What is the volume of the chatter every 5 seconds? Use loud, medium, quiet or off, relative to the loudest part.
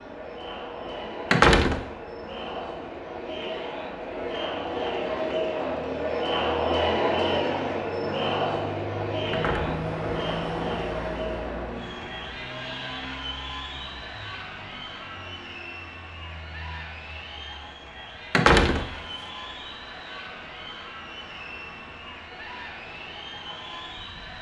medium, loud, medium, quiet, quiet.